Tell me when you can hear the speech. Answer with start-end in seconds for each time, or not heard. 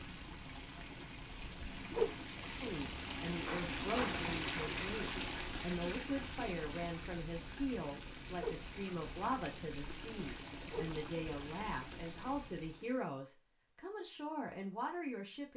2.6-15.5.